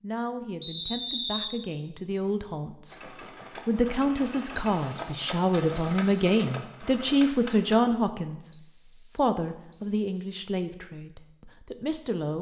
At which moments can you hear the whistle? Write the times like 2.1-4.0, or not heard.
0.6-1.5, 4.5-6.5, 8.5-10.4.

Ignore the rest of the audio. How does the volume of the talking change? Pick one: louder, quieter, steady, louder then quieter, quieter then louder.
louder then quieter.